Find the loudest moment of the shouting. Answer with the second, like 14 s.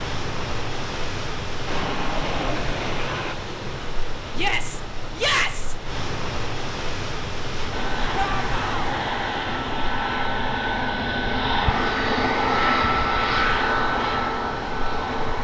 5 s.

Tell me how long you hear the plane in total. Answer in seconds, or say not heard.
9 s.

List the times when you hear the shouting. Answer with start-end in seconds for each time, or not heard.
4.3-5.8, 8.2-8.9.